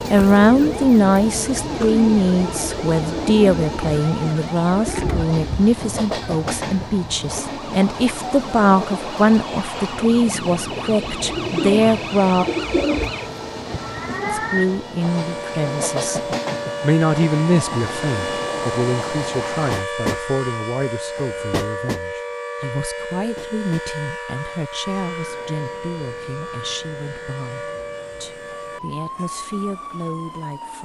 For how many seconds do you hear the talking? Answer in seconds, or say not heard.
28 s.